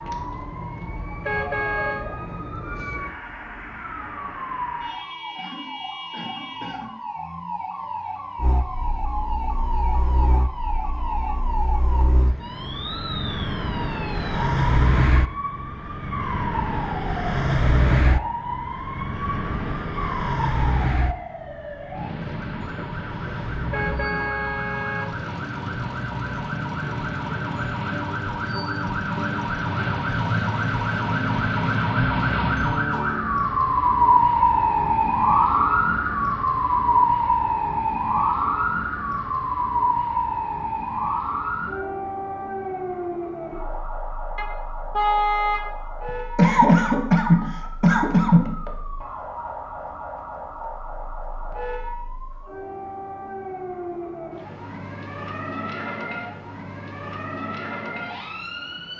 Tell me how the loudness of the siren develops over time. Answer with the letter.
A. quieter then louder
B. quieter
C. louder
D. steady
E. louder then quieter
E.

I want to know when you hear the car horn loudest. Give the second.
45 s.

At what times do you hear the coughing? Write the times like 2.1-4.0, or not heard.
5.3-7.0, 46.4-48.5.